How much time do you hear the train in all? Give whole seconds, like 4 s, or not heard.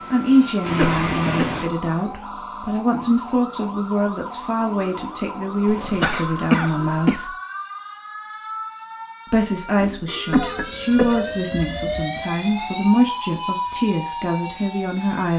2 s.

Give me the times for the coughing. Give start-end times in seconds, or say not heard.
0.7-1.6, 5.7-7.2, 10.3-12.1.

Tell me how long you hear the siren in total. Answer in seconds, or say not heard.
15 s.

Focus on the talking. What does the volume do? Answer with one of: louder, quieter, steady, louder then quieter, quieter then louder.
steady.